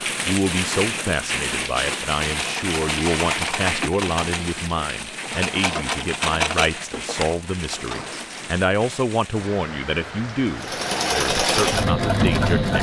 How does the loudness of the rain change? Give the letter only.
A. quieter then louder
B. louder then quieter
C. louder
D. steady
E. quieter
E.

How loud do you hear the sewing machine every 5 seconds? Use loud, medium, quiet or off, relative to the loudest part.
medium, medium, loud.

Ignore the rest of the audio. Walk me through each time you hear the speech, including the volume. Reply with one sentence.
The speech can be heard from 0.2 to 12.7 s, at a steady volume.